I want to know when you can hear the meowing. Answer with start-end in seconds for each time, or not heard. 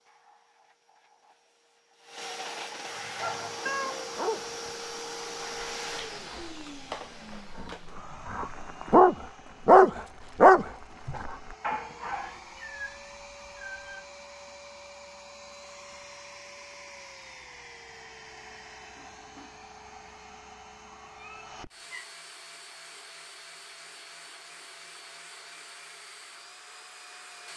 3.6-4.6, 12.1-14.1, 21.0-22.1.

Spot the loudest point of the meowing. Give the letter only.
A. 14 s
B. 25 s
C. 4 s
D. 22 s
C.